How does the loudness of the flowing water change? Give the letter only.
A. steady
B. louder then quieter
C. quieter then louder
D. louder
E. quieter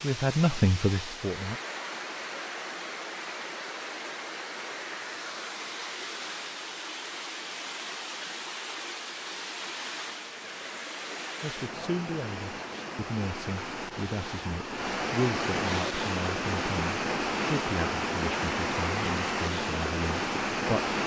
D.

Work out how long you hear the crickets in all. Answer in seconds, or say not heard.
not heard.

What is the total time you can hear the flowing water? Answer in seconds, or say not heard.
21 s.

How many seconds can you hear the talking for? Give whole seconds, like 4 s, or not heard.
11 s.